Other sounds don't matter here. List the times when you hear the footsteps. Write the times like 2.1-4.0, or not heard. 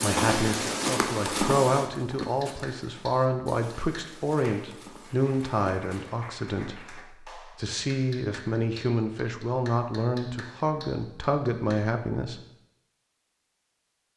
0.0-6.1.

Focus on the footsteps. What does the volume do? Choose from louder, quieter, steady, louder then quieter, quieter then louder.
quieter then louder.